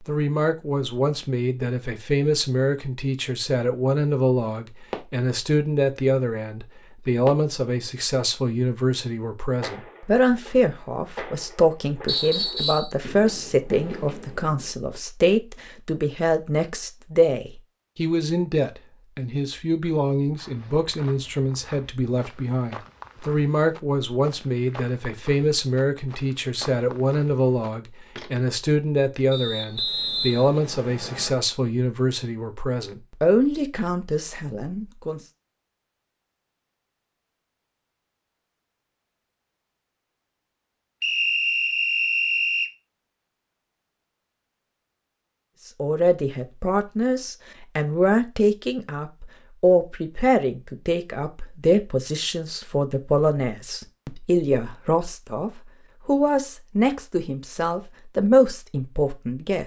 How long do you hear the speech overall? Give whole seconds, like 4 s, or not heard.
49 s.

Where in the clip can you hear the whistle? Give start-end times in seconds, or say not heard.
12.1-12.9, 29.3-31.3, 41.0-42.7.